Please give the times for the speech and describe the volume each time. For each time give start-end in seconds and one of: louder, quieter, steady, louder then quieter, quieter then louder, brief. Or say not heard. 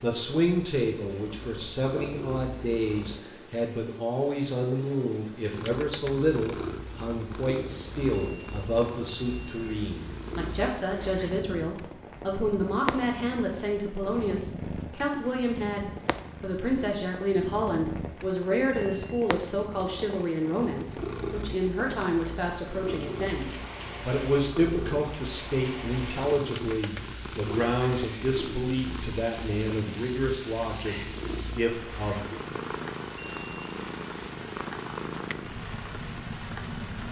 0.0-32.4 steady.